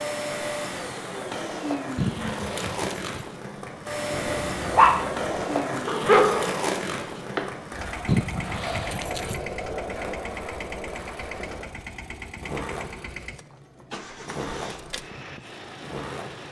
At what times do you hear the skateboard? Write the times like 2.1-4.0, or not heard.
0.0-16.4.